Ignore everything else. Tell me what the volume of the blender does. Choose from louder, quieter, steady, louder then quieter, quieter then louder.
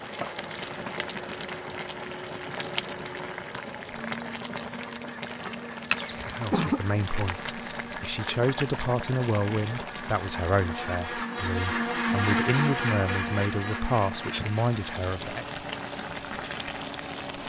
louder then quieter.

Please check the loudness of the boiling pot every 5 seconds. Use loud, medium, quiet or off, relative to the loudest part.
loud, loud, medium, loud.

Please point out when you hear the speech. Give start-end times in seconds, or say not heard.
6.2-15.4.